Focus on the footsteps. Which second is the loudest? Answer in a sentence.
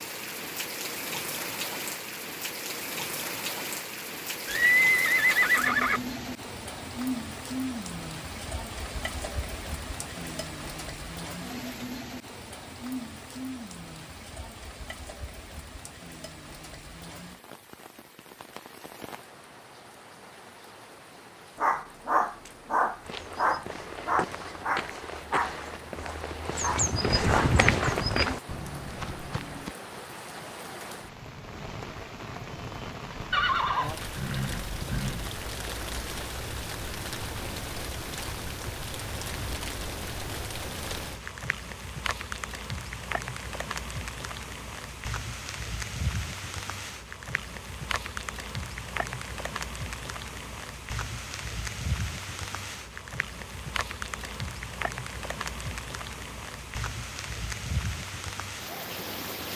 The loudest moment of the footsteps is at 28 seconds.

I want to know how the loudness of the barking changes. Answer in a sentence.
The loudness of the barking goes down.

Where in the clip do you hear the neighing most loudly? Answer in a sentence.
The volume of the neighing peaks at 5 seconds.